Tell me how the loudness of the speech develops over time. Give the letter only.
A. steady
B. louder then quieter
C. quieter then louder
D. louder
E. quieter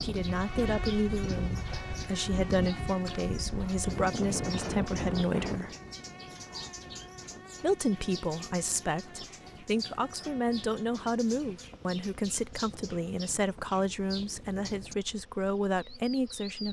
A.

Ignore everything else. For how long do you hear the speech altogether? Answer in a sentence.
The speech can be heard for 15 seconds in total.